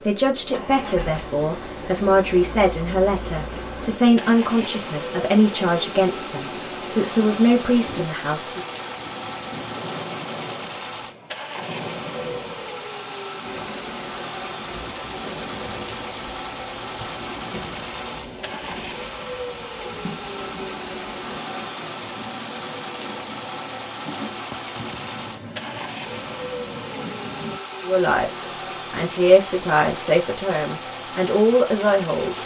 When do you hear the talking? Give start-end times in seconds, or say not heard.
0.0-8.6, 27.9-32.4.